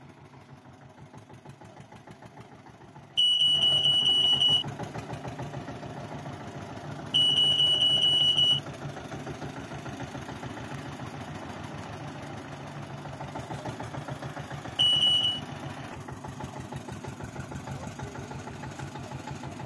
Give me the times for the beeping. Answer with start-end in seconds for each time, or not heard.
3.1-4.7, 7.1-8.6, 14.8-15.4.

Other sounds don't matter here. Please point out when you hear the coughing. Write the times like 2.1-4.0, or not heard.
not heard.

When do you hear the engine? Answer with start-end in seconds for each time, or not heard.
0.0-19.6.